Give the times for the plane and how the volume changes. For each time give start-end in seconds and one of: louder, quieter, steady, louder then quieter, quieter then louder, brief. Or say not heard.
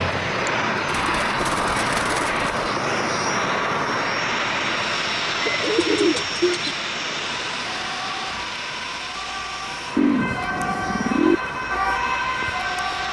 0.0-13.0 quieter.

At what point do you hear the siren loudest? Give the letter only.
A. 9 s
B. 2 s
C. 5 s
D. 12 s
D.